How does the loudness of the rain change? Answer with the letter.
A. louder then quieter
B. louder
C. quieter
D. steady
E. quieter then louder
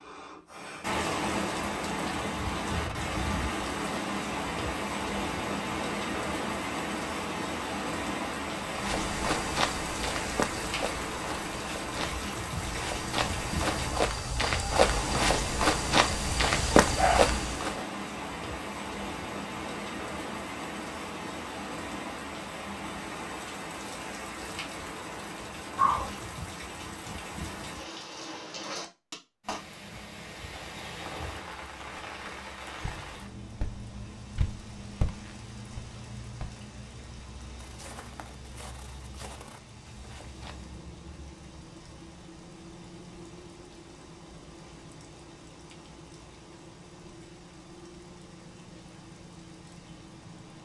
C.